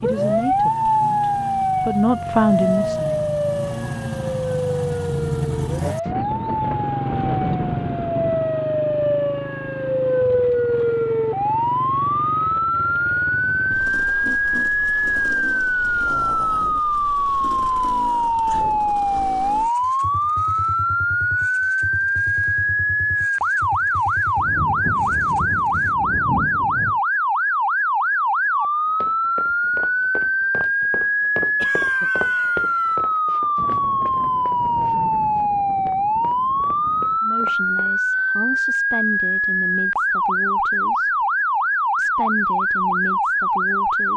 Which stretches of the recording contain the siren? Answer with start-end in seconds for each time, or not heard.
0.0-44.1.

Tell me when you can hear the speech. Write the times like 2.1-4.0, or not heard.
0.0-3.4, 37.2-41.2, 42.0-44.1.